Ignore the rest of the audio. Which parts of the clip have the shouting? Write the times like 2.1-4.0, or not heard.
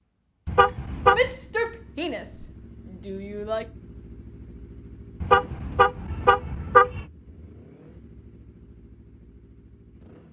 1.1-3.7.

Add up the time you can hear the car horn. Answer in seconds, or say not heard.
3 s.